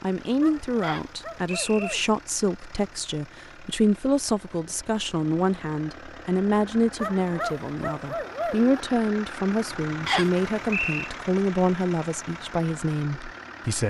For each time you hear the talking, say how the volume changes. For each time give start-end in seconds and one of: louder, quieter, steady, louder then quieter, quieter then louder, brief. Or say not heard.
0.0-13.8 steady.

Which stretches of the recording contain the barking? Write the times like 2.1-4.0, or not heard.
0.4-2.0, 7.0-8.8.